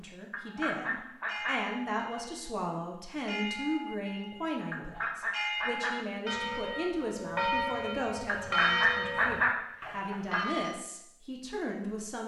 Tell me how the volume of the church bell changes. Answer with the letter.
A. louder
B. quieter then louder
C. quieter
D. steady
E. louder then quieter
A.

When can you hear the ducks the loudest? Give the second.
9 s.